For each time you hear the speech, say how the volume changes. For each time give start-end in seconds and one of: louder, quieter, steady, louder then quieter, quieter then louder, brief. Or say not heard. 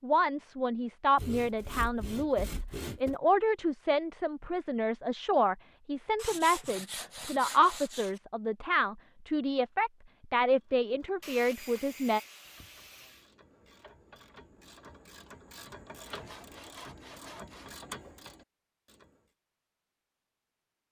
0.0-12.2 steady.